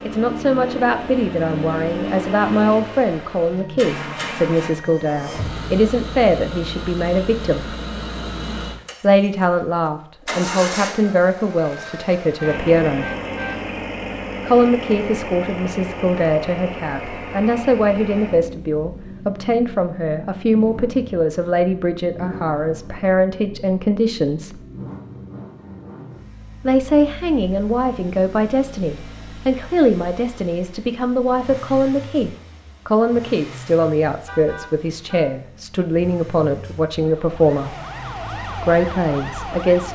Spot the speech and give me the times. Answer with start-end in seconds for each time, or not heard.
0.1-7.8, 9.0-13.1, 14.4-24.6, 26.6-37.8, 38.5-39.8.